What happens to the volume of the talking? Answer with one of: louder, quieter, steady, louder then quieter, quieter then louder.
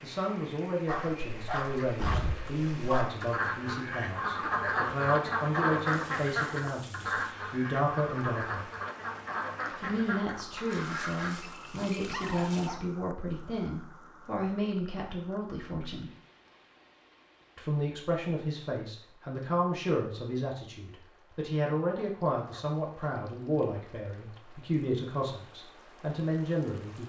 steady.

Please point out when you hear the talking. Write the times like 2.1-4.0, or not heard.
0.0-8.7, 9.8-16.1, 17.6-27.0.